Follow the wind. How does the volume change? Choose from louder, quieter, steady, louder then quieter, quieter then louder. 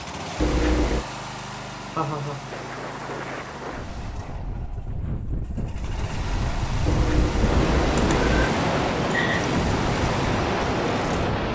louder.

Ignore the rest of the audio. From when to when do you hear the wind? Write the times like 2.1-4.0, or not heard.
2.5-11.4.